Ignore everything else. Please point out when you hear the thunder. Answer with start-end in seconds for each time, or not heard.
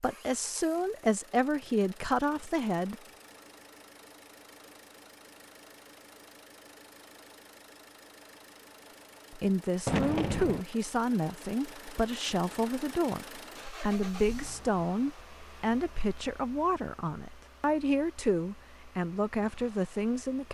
9.8-10.7.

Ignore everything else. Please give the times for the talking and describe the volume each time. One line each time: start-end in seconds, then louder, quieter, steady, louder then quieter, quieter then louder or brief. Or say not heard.
0.0-3.0 brief
9.3-20.5 steady.